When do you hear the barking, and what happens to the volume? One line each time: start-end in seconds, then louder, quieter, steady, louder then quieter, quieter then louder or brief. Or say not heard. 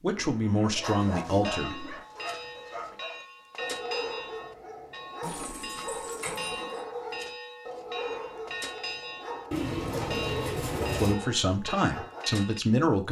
0.6-12.4 steady.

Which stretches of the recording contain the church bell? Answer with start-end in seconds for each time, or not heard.
0.8-12.6.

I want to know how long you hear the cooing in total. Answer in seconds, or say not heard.
5 s.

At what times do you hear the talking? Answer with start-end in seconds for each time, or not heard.
0.0-1.9, 10.9-13.0.